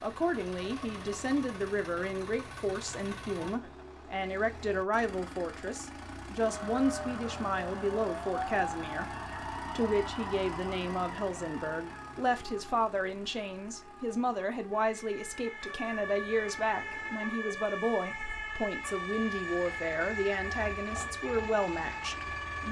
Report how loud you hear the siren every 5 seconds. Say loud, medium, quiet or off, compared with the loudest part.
off, loud, medium, loud, loud.